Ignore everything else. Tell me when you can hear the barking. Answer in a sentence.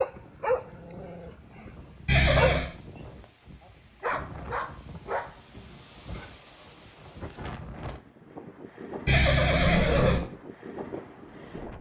You can hear the barking from 0.0 to 2.5 s and from 4.0 to 6.3 s.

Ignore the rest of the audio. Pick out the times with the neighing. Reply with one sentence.
The neighing can be heard from 2.0 to 2.7 s and from 9.1 to 10.2 s.